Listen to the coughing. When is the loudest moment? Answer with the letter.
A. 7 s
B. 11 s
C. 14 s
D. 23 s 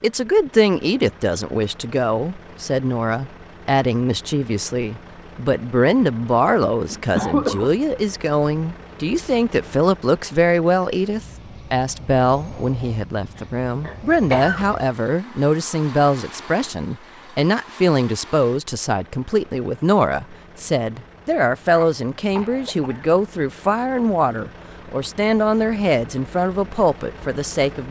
A.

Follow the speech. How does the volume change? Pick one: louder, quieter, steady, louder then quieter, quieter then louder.
steady.